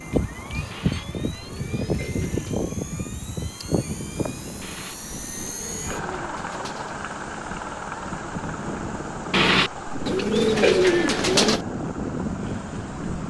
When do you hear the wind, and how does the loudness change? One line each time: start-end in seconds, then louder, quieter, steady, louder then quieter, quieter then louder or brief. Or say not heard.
0.0-13.2 louder.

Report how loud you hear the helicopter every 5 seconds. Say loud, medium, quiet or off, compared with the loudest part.
loud, medium, medium.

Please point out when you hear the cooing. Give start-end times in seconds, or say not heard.
0.7-2.6, 4.6-7.0, 9.3-11.6.